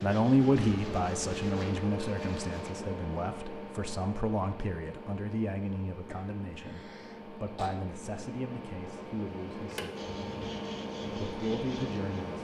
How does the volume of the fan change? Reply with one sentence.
The volume of the fan goes down, then up.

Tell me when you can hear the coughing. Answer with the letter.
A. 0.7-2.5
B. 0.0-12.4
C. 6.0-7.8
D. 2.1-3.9
C.